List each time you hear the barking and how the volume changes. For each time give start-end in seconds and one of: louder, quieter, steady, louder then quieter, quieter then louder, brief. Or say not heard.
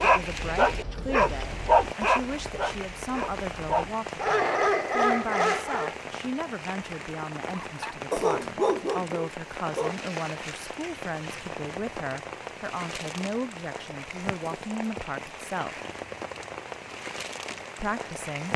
0.0-6.0 quieter then louder
7.5-10.0 brief.